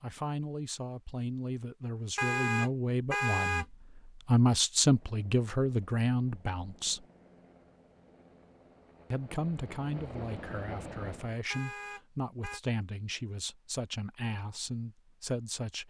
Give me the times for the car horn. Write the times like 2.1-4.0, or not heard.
2.1-3.6, 11.5-12.6.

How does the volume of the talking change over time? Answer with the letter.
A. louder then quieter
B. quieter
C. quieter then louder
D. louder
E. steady
A.